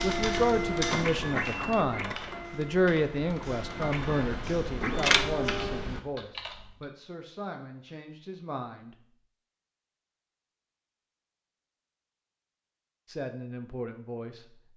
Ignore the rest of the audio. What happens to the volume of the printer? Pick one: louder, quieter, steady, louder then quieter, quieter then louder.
quieter then louder.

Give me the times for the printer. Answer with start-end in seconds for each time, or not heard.
0.0-5.9.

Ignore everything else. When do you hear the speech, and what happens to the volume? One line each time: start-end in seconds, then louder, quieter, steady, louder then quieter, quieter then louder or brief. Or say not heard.
0.0-8.9 quieter
13.1-14.6 brief.